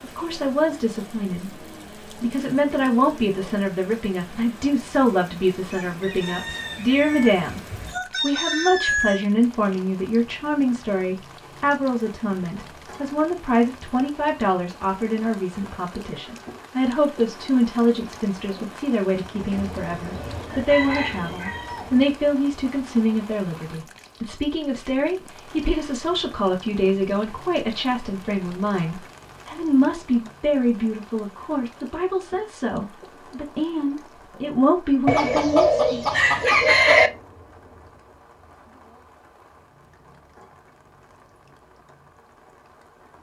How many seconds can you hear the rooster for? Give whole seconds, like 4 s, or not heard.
8 s.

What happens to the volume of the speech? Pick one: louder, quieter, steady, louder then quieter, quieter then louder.
steady.